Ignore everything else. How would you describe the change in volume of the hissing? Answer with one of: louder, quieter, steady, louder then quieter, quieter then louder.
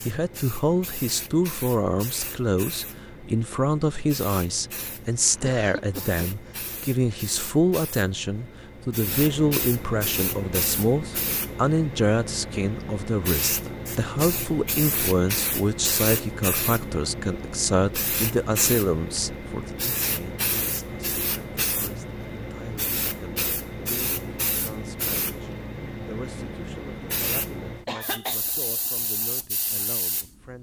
louder.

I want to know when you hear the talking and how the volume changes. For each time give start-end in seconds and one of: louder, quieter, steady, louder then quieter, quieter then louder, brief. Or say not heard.
0.0-30.5 quieter.